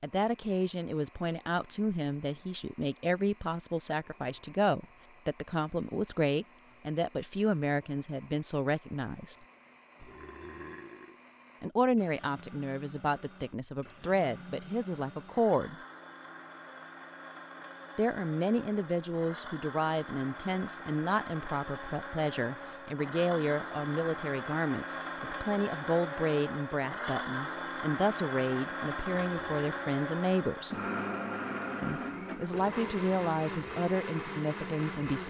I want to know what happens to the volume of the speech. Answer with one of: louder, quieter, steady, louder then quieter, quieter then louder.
steady.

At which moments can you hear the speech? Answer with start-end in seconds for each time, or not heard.
0.0-9.3, 11.6-15.8, 17.9-30.8, 31.8-35.2.